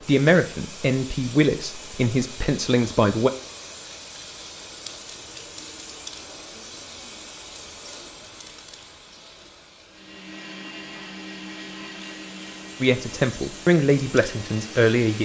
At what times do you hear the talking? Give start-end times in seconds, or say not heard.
0.1-3.3, 12.8-15.1.